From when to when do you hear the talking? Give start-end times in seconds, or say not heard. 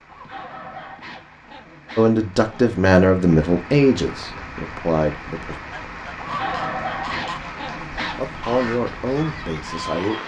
1.9-5.5, 8.2-10.2.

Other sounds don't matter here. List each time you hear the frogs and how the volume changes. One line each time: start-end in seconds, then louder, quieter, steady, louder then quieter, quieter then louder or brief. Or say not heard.
not heard.